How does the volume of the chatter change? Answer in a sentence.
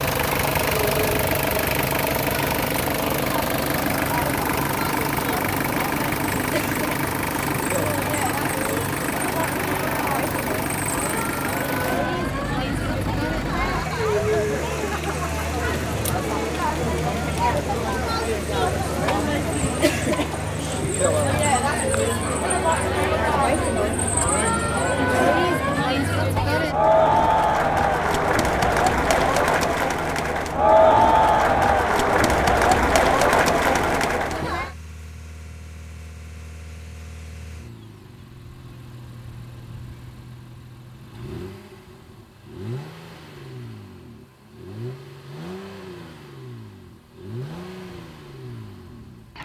The volume of the chatter goes up.